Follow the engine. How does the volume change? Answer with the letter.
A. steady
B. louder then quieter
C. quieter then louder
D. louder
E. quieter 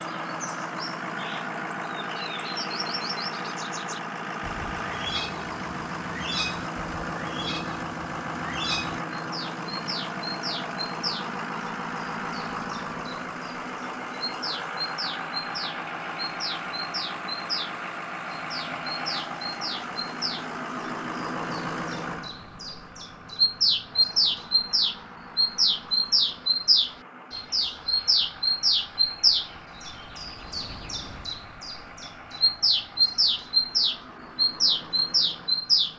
E.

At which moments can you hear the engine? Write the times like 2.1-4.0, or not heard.
0.0-35.9.